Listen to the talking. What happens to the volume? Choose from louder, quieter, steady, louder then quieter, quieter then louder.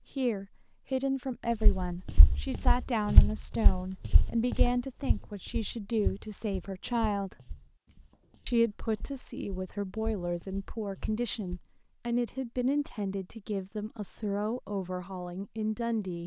steady.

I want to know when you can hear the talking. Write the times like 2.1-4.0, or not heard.
0.1-7.3, 8.4-16.2.